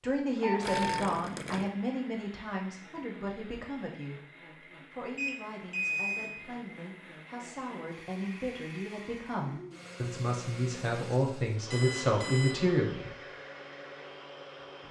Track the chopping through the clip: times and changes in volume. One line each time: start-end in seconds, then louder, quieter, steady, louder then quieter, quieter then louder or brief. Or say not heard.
not heard.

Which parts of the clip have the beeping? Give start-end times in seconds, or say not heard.
0.4-1.0, 5.2-6.3, 11.7-12.6.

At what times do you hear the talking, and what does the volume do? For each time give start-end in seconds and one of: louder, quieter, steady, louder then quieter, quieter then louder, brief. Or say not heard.
0.0-13.1 quieter then louder.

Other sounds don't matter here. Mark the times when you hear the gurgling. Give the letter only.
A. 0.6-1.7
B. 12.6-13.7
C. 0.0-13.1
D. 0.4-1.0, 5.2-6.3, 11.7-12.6
A.